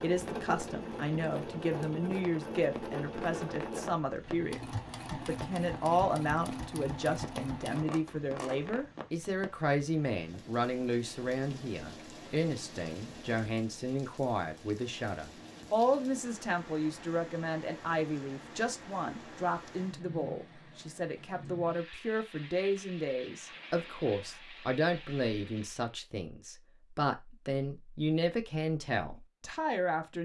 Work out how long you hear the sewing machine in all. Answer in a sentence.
The sewing machine can be heard for 9 seconds in total.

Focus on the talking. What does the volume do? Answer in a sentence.
The loudness of the talking stays about the same.